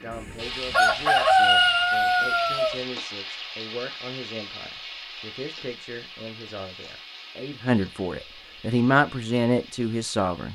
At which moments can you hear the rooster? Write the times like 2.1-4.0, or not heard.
0.1-2.8.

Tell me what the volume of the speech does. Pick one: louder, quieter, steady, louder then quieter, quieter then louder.
louder.